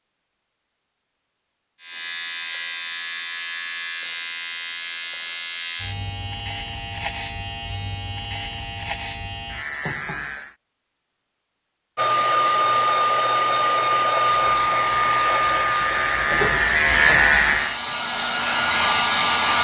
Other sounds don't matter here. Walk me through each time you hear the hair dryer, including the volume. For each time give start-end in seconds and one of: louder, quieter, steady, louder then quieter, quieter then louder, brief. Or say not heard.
11.9-19.5 quieter then louder.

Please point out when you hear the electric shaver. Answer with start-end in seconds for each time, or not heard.
1.8-10.6, 14.3-17.8.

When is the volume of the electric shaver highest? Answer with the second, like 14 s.
17 s.